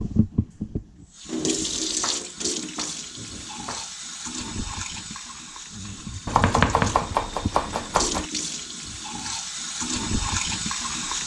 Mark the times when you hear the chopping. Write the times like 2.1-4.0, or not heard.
2.0-3.9, 6.2-8.2.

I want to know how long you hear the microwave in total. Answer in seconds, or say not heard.
not heard.